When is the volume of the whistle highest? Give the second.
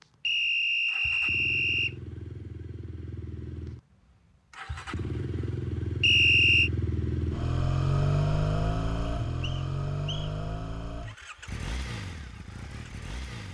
6 s.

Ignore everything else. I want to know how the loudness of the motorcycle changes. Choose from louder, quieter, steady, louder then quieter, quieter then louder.
louder then quieter.